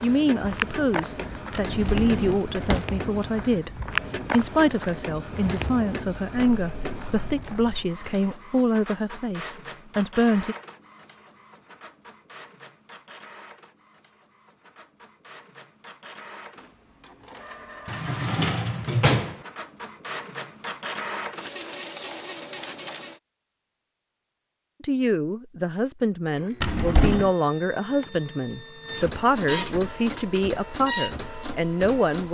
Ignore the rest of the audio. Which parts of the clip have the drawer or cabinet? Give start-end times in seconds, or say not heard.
1.5-2.9, 17.9-19.4, 26.6-27.3.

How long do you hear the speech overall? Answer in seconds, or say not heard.
18 s.